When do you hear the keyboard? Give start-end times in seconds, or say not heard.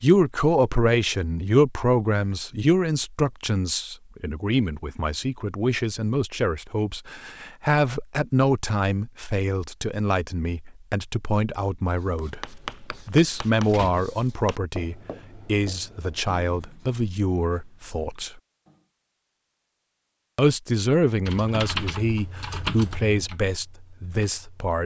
21.2-24.8.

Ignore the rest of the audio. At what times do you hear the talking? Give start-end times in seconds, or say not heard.
0.0-18.4, 20.4-24.8.